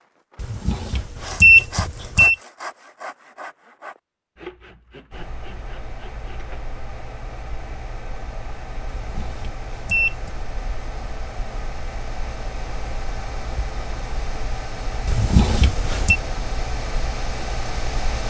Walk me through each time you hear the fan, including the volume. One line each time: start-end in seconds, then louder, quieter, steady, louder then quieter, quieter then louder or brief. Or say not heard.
5.1-18.2 louder.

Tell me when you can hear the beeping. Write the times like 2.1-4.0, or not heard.
0.4-2.4, 8.9-10.3, 15.1-16.1.